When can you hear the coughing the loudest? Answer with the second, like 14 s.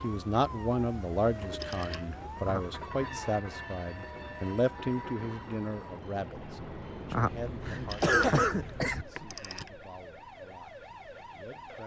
8 s.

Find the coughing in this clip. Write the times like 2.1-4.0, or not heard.
2.4-3.3, 7.1-9.1.